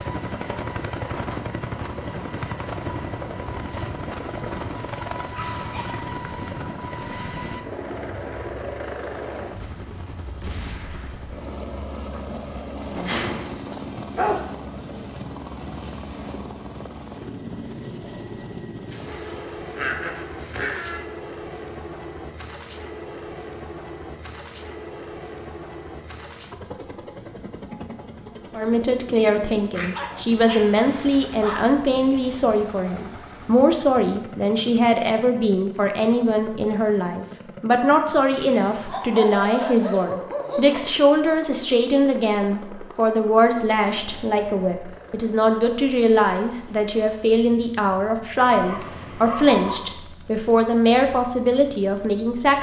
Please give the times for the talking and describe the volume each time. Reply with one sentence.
The talking can be heard from 28.5 to 52.5 s, at a steady volume.